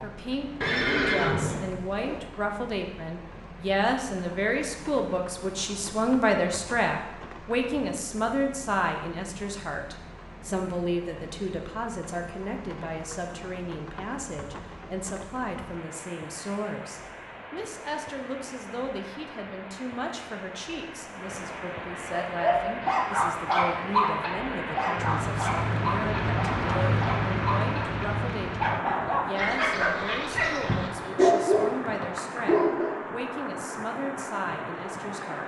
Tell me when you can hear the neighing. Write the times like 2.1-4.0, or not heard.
0.6-2.2.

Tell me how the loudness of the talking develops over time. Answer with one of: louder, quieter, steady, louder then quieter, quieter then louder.
quieter.